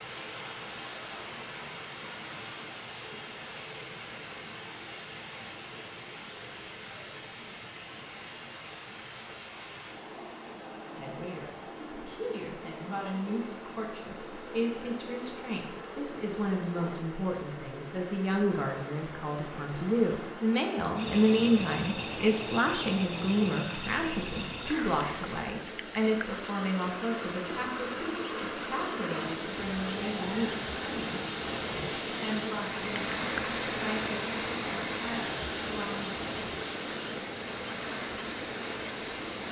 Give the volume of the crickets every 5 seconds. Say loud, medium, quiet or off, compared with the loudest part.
medium, medium, loud, loud, medium, medium, medium, medium.